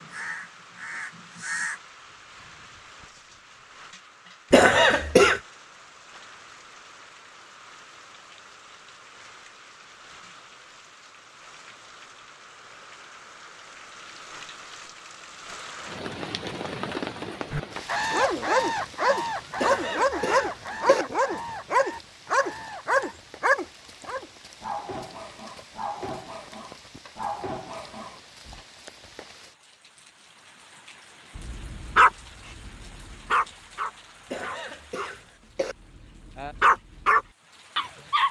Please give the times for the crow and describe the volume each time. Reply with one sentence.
You can hear the crow briefly from 0.0 to 1.8 s; and from 17.5 to 23.1 s, getting quieter.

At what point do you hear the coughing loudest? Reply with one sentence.
The loudest moment of the coughing is at 5 seconds.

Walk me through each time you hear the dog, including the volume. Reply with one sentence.
You can hear the dog from 18.1 to 28.6 s, getting quieter; and from 31.4 to 38.2 s, getting quieter then louder.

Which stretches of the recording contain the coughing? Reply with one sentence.
The coughing can be heard from 4.5 to 5.4 s, from 19.6 to 21.1 s and from 34.3 to 35.8 s.